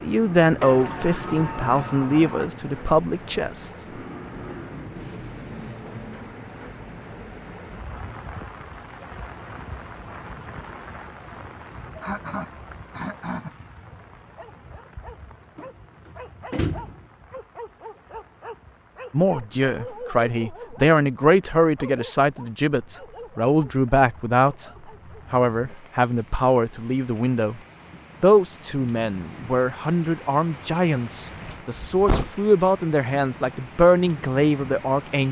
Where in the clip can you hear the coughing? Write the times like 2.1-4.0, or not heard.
11.9-13.9.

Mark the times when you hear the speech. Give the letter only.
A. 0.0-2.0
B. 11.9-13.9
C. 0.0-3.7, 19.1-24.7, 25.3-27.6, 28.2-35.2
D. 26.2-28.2
C.